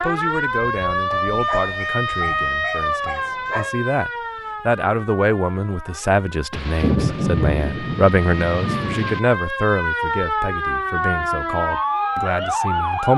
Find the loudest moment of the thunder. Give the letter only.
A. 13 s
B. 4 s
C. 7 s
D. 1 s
C.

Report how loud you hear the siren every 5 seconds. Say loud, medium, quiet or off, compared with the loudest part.
loud, medium, loud.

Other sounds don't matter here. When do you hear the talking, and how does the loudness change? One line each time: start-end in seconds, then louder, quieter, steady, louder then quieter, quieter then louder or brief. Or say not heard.
0.0-13.1 louder then quieter.